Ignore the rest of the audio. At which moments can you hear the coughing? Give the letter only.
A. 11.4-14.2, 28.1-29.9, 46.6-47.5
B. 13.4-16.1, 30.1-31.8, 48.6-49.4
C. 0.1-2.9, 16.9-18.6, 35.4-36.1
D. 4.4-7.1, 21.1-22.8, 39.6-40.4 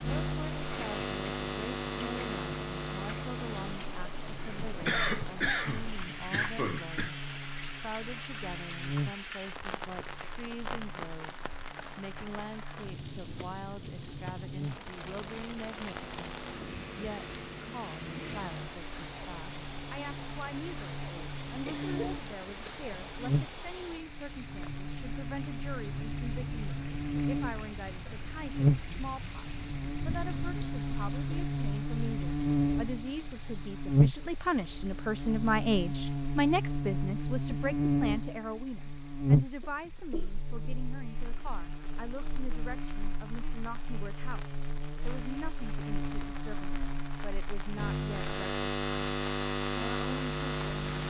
D.